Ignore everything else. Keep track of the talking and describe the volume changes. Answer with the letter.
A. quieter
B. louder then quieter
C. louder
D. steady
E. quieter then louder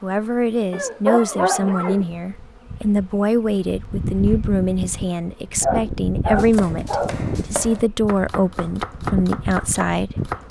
D.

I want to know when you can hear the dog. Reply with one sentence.
You can hear the dog from 0.7 to 2.0 s and from 5.6 to 7.2 s.